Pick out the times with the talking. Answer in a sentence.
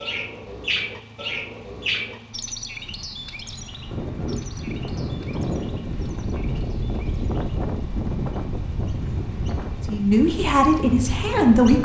The talking can be heard from 9.8 to 11.7 s.